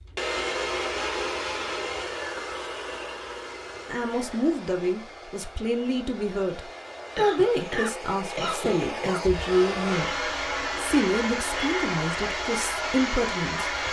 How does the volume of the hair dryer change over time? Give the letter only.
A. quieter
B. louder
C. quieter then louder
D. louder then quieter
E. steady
C.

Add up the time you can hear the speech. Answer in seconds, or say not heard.
10 s.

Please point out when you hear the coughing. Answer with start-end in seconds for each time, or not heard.
7.2-9.2.